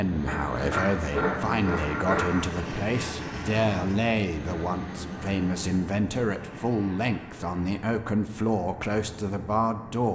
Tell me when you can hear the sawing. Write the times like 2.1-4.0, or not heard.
0.2-2.5.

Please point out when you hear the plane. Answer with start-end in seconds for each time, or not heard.
0.0-10.1.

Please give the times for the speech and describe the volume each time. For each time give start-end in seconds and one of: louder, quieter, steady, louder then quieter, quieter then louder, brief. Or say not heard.
0.0-10.1 steady.